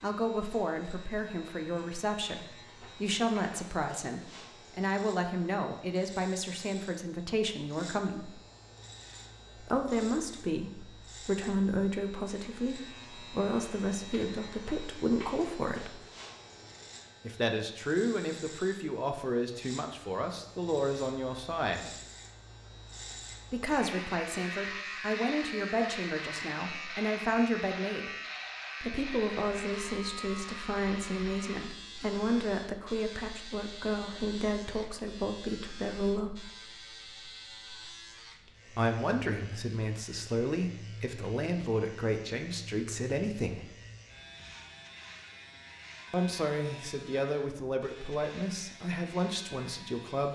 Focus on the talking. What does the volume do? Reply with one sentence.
The loudness of the talking stays about the same.